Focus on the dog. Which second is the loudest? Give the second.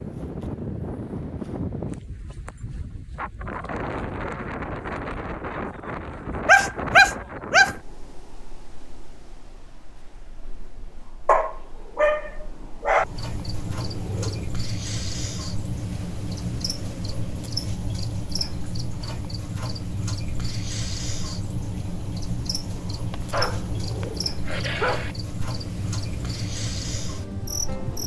7 s.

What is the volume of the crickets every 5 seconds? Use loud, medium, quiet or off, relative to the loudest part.
off, off, loud, loud, loud, loud.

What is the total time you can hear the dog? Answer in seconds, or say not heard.
5 s.